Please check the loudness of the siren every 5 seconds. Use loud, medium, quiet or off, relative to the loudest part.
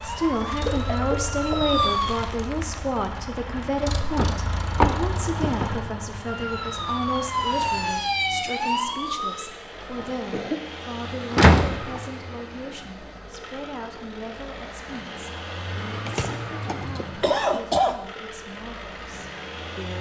loud, loud, off, off.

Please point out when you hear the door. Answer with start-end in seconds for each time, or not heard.
4.2-5.9, 11.3-12.0.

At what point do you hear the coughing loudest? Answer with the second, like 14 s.
18 s.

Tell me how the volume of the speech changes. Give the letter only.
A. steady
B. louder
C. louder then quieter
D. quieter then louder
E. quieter
E.